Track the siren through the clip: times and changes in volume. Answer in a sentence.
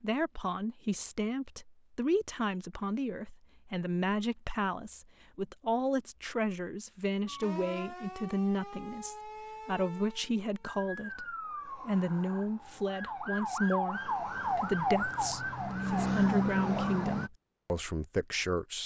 The siren can be heard from 7.2 to 17.3 s, getting louder.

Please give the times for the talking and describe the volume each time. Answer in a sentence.
You can hear the talking from 0.0 to 18.8 s, at a steady volume.